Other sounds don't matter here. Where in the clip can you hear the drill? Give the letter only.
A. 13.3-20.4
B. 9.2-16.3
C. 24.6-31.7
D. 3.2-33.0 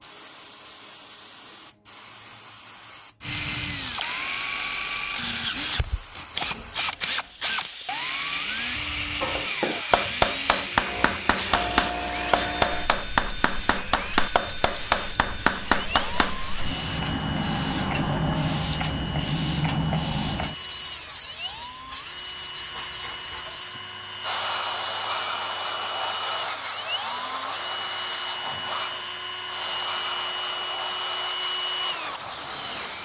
D.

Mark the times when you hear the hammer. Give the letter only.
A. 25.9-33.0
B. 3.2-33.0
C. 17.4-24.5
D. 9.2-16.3
D.